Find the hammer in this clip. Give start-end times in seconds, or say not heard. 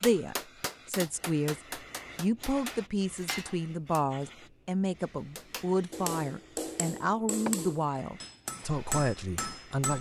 0.0-4.0, 5.3-9.9.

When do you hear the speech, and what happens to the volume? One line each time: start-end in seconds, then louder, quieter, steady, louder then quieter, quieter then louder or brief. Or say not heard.
0.0-9.9 steady.